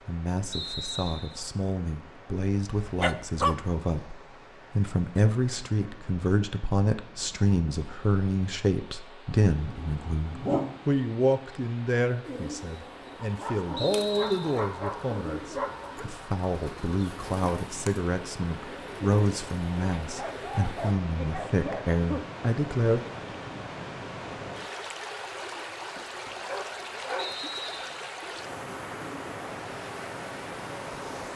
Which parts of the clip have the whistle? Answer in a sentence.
The whistle can be heard from 0.5 to 1.4 s, from 13.8 to 14.6 s and from 27.1 to 28.1 s.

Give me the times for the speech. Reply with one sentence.
You can hear the speech from 0.1 to 23.1 s.